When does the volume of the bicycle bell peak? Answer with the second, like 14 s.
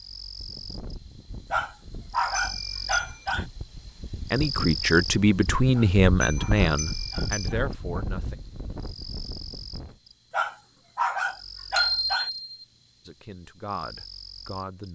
12 s.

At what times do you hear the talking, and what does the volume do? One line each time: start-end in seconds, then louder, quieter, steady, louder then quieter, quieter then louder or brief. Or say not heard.
4.3-8.3 quieter
13.1-14.9 brief.